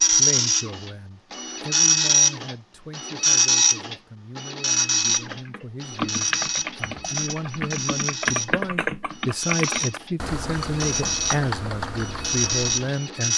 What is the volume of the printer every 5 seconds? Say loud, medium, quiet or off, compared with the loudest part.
loud, medium, medium.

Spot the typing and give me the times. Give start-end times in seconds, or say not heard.
5.0-12.9.